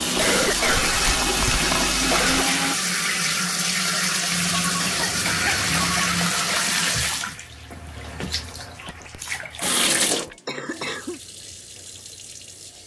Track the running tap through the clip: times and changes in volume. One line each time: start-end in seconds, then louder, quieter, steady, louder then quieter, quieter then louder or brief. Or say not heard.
0.0-12.8 quieter.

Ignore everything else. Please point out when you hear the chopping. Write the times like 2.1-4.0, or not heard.
not heard.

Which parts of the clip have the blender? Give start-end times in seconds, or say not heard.
0.0-2.8.